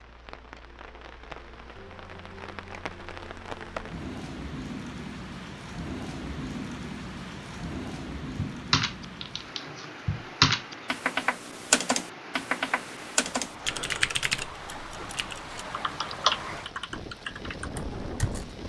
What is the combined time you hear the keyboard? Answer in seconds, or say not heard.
10 s.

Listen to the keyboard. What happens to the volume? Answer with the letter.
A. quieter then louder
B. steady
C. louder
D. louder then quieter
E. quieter
A.